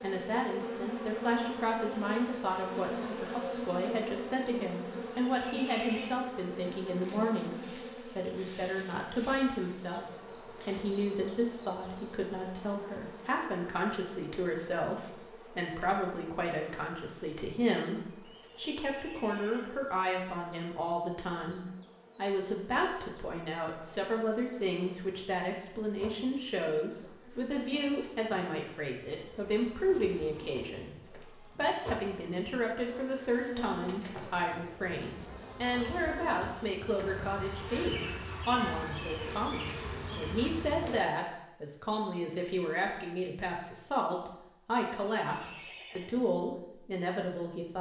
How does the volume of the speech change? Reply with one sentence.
The volume of the speech stays about the same.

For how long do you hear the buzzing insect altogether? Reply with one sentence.
The buzzing insect can be heard for 41 seconds in total.